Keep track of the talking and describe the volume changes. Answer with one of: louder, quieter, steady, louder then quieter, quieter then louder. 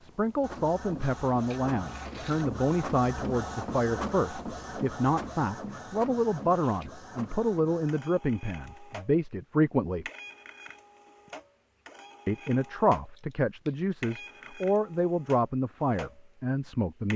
steady.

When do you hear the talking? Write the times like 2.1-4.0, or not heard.
0.0-10.1, 12.2-17.1.